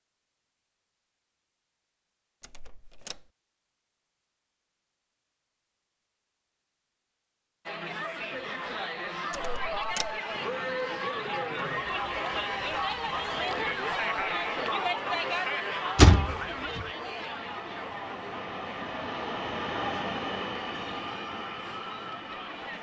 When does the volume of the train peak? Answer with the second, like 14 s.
20 s.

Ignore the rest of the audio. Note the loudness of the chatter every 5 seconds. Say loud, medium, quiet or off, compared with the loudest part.
off, loud, loud, loud, medium.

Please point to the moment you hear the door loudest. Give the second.
16 s.